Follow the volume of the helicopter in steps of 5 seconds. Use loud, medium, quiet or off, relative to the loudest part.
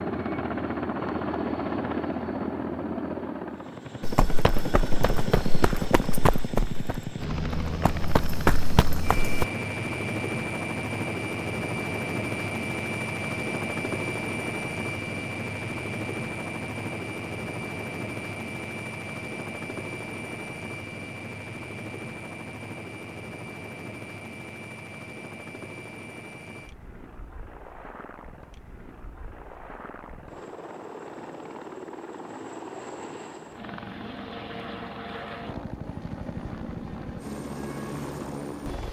loud, loud, loud, loud, medium, quiet, medium, medium.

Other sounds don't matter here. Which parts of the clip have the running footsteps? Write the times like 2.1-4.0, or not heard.
4.0-9.4.